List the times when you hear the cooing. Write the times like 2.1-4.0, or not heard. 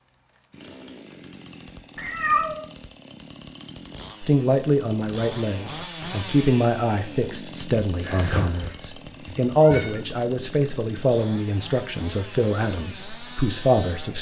not heard.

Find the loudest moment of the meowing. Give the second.
2 s.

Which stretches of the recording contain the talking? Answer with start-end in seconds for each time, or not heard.
4.2-14.1.